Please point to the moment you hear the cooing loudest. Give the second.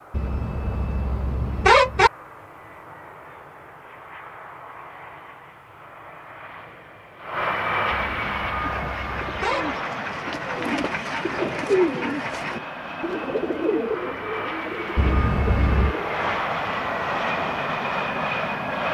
12 s.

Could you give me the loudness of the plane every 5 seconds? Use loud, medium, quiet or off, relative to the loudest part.
quiet, loud, medium, loud.